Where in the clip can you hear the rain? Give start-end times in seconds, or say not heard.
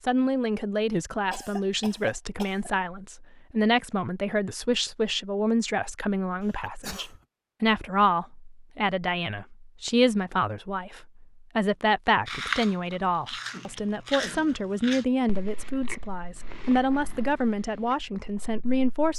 not heard.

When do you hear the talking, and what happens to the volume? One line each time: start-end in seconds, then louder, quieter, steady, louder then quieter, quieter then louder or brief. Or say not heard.
0.0-19.1 steady.